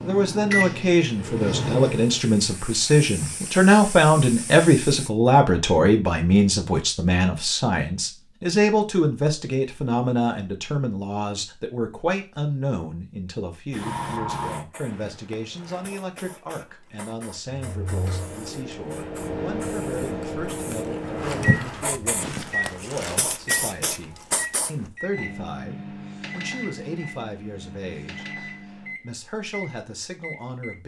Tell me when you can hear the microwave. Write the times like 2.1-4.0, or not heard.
0.0-2.2, 17.5-30.8.